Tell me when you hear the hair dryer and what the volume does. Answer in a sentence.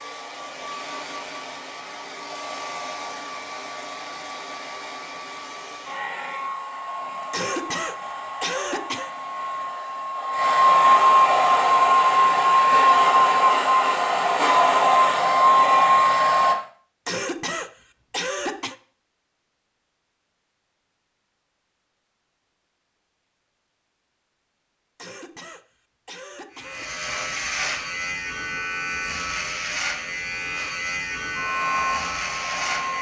The hair dryer can be heard from 0.0 to 16.6 s, getting louder; and briefly from 31.3 to 32.9 s.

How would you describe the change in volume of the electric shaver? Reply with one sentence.
The volume of the electric shaver stays about the same.